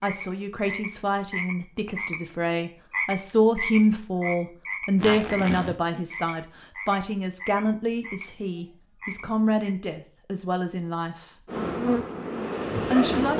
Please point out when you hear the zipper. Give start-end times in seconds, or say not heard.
5.0-5.8.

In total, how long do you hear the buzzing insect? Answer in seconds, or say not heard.
2 s.